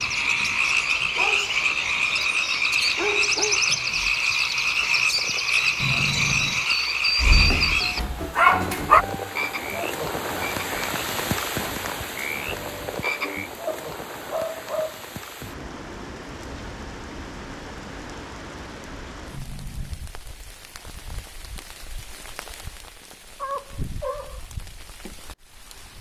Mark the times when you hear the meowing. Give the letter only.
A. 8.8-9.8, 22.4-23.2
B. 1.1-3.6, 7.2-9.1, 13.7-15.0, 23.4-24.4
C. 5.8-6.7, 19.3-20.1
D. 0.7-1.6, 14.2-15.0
C.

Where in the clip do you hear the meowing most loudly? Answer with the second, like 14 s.
6 s.